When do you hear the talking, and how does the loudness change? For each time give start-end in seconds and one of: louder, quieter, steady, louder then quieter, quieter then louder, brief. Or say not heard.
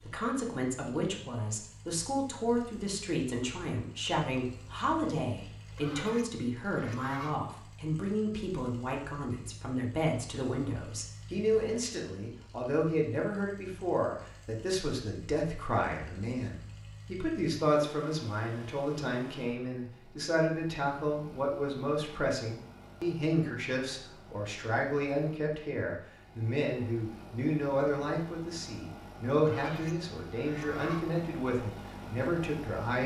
0.1-33.0 steady.